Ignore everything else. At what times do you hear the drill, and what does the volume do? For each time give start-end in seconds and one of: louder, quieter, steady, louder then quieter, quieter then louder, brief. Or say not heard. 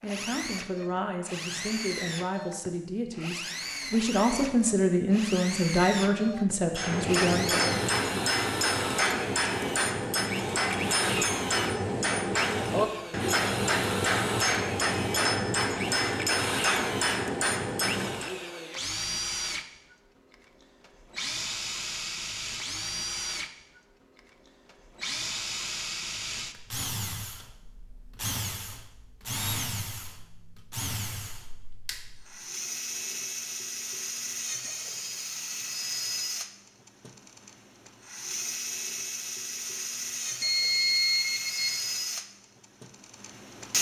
0.0-43.7 steady.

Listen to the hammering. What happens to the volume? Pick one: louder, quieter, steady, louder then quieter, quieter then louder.
steady.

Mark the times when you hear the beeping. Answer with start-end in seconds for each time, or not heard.
40.4-41.8.